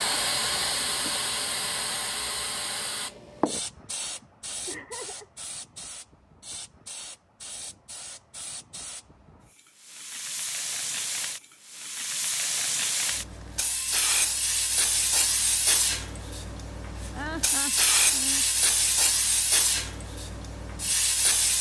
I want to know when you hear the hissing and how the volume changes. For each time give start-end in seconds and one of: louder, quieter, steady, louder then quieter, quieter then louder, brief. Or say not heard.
0.0-21.5 quieter then louder.